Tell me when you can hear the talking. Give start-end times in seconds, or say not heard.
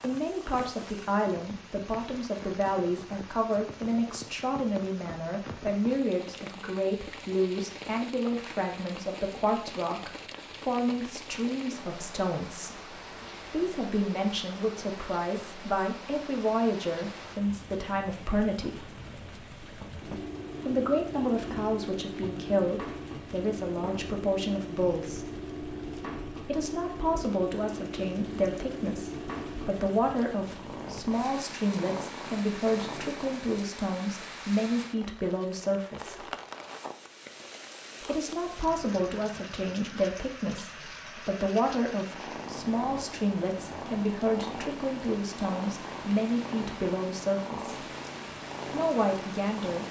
0.0-18.8, 20.6-25.3, 26.4-36.2, 38.0-47.8, 48.7-49.8.